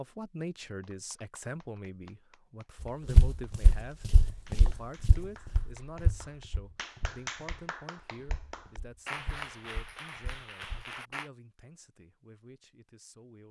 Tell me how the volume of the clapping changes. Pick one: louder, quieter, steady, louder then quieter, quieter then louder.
louder.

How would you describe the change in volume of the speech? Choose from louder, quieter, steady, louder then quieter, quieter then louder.
quieter.